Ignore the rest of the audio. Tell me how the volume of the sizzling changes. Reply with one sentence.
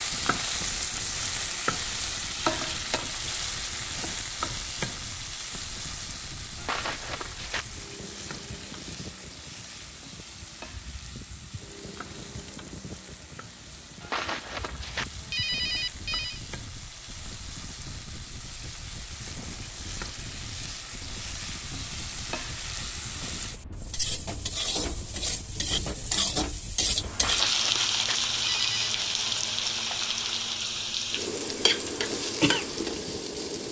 The volume of the sizzling goes down, then up.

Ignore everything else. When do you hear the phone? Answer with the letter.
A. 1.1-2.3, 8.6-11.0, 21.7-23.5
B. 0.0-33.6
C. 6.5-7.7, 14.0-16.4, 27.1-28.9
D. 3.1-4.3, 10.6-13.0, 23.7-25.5
C.